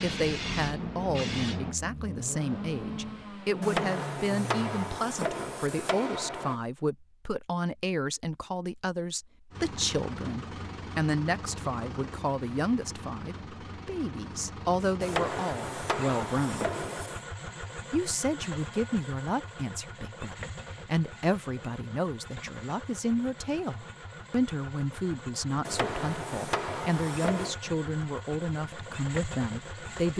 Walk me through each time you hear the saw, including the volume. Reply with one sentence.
You can't hear the saw here.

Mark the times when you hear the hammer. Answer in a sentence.
The hammer can be heard from 3.6 to 6.6 s, from 15.0 to 17.2 s and from 25.6 to 27.6 s.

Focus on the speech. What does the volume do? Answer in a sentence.
The volume of the speech stays about the same.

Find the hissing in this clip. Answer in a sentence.
You can hear the hissing from 0.0 to 1.8 s.